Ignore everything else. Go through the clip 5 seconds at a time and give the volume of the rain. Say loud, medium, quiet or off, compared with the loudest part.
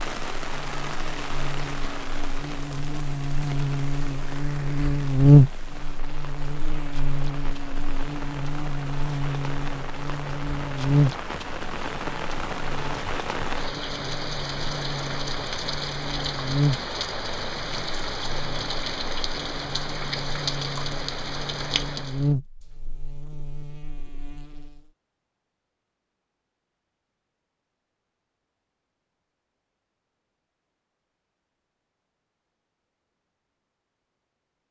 medium, medium, loud, loud, loud, off, off.